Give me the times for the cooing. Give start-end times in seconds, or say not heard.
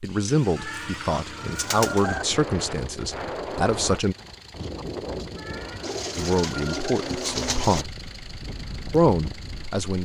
0.2-2.2, 5.8-7.8.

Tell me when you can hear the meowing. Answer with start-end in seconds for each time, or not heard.
0.6-2.2, 5.3-7.0.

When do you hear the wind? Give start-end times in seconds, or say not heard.
2.0-9.8.